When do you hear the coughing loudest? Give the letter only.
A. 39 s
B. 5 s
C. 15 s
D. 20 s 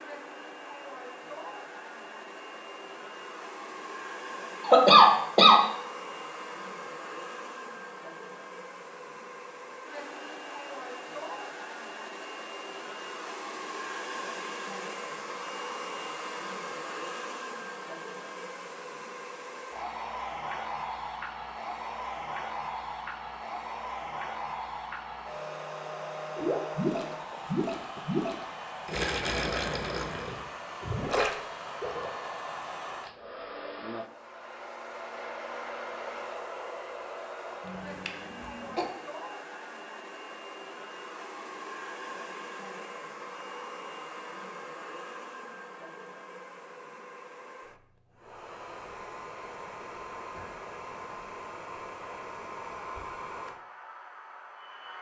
B.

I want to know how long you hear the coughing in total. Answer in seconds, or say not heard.
2 s.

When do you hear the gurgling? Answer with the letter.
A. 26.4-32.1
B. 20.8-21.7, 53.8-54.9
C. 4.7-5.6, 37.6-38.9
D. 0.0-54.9
A.